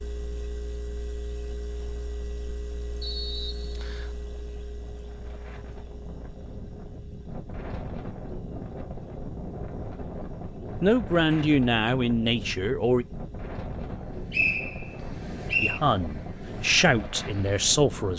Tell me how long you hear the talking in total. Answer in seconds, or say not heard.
5 s.